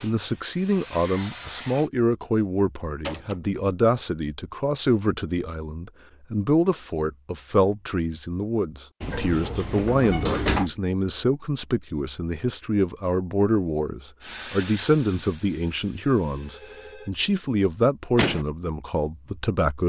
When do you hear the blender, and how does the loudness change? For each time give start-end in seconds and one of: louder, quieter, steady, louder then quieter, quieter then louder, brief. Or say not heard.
not heard.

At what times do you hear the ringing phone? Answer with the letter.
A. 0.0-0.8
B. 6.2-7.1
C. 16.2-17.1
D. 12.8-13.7
C.